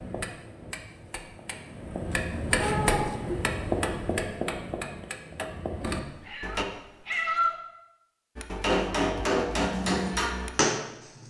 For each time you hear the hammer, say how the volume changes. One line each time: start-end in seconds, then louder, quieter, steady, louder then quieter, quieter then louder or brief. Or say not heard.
0.0-6.7 louder then quieter
8.3-11.2 brief.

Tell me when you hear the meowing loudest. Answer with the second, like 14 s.
7 s.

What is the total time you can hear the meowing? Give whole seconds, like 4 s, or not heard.
2 s.